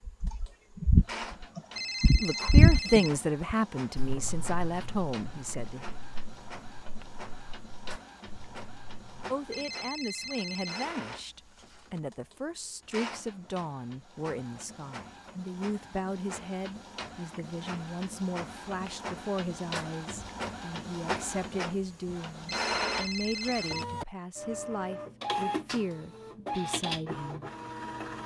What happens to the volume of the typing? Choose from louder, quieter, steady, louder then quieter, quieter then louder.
quieter.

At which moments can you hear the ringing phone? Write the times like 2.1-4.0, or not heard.
1.8-3.1, 9.5-10.8, 22.4-23.9.